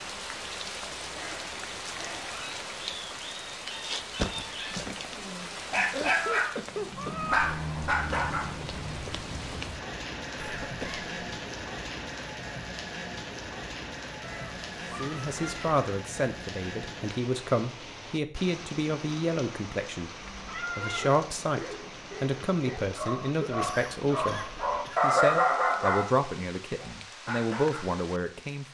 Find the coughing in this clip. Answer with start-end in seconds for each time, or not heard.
5.7-7.2, 10.3-11.1, 23.4-25.0.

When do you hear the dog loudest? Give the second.
25 s.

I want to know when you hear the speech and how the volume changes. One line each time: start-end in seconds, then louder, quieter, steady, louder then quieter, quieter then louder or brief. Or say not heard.
14.9-28.6 steady.